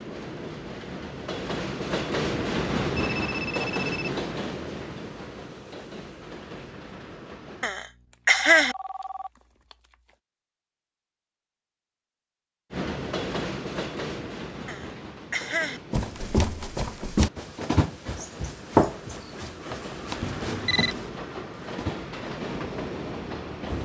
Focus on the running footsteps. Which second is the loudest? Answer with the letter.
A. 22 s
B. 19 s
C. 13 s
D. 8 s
B.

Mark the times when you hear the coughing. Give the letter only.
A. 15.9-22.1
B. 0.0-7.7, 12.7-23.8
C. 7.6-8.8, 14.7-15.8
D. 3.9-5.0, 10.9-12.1
C.